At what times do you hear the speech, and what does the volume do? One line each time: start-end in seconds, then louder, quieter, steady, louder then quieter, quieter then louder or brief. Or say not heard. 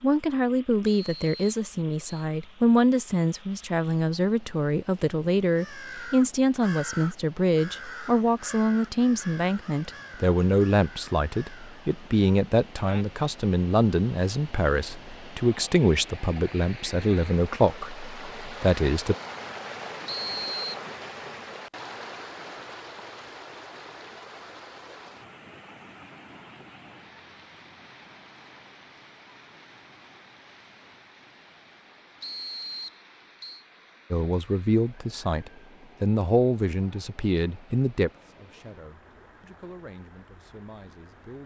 0.0-19.1 steady
34.1-41.4 quieter.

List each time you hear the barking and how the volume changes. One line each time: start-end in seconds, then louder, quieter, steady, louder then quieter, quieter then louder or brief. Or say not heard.
not heard.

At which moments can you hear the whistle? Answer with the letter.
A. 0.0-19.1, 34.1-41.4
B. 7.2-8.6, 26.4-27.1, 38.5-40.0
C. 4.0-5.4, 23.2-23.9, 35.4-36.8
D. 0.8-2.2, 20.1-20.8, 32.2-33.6
D.